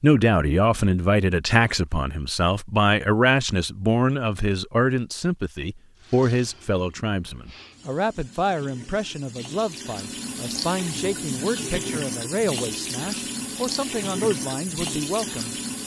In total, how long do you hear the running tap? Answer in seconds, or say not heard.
10 s.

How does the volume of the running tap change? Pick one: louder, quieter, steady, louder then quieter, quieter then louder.
louder.